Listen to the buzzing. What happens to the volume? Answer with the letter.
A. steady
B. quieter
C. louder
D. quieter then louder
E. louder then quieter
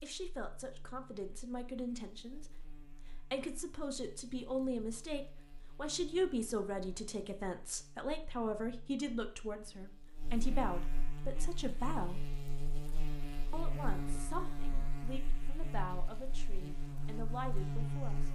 C.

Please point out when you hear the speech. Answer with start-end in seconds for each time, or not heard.
0.0-12.2, 13.5-18.3.